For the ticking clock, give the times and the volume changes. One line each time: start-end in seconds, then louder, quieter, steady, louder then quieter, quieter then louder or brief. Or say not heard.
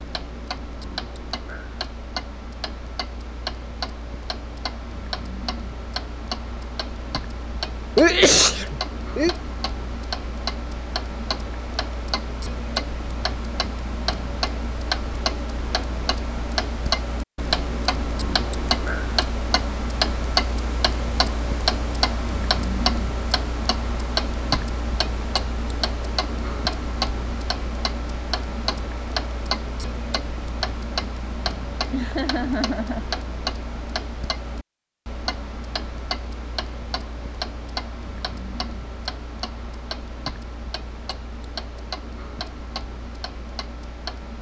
0.0-44.3 louder then quieter.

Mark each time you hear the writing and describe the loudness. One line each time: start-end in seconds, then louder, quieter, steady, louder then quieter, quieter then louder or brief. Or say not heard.
not heard.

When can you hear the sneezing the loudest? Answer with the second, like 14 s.
8 s.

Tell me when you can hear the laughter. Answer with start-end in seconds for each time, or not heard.
31.9-33.0.